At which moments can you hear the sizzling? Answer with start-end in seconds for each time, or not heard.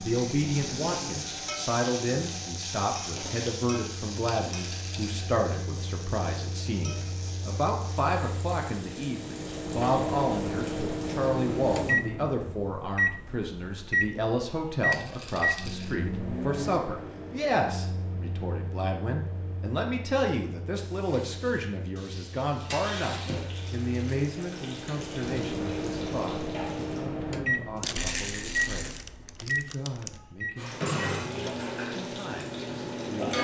0.0-11.9, 20.8-27.1, 30.6-33.4.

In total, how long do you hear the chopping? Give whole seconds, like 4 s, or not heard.
not heard.